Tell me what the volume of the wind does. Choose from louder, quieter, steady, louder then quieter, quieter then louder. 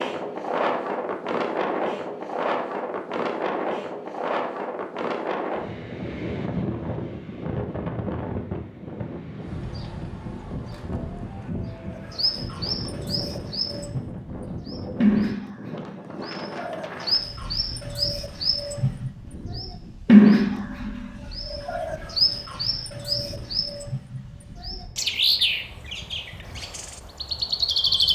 quieter.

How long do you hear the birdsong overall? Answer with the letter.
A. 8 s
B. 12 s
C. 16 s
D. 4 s
C.